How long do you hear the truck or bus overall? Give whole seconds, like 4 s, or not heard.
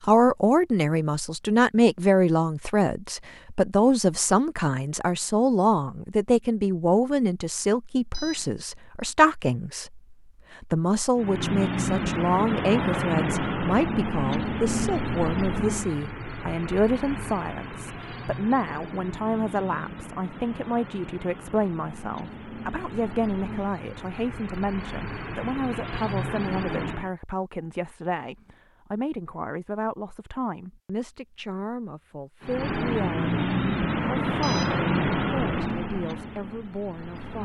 21 s.